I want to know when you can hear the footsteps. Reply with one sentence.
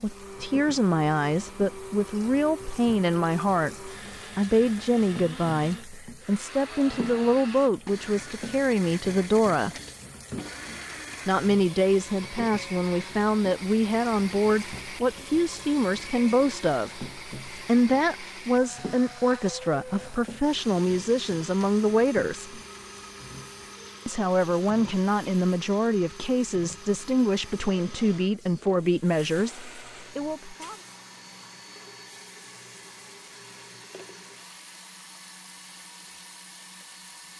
The footsteps can't be heard in this clip.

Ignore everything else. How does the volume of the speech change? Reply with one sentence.
The loudness of the speech stays about the same.